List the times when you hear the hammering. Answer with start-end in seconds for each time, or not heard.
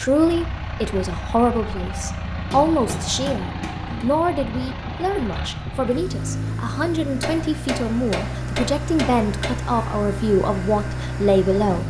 2.5-4.0, 7.2-9.5.